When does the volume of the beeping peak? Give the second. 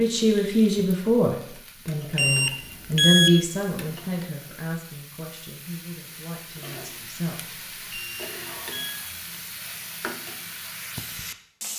3 s.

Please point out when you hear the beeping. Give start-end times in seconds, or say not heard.
2.1-3.5, 7.9-9.1.